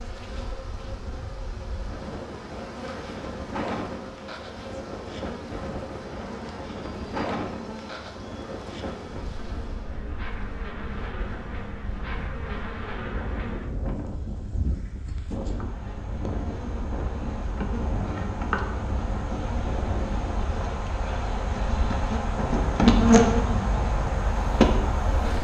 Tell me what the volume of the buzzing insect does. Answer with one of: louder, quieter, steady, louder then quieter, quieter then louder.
louder.